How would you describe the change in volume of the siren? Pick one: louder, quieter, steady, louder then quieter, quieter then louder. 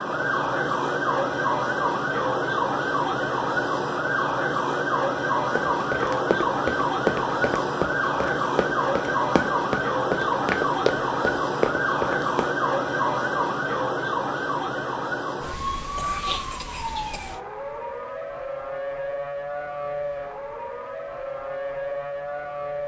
quieter.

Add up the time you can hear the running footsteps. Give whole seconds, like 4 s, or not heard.
7 s.